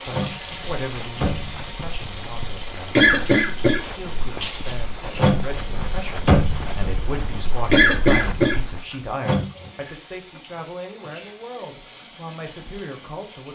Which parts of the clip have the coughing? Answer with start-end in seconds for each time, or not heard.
3.0-4.8, 7.7-8.6.